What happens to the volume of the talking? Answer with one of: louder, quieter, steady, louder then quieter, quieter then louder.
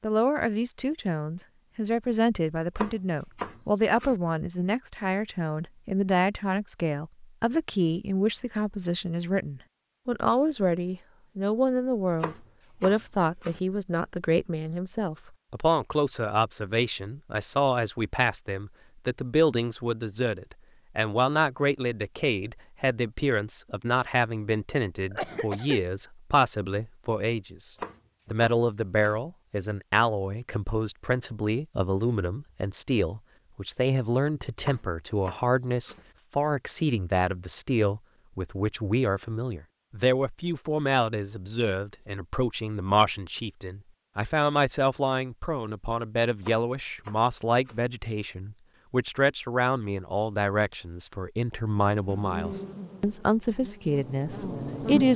steady.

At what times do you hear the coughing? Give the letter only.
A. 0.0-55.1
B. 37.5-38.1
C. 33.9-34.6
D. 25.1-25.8
D.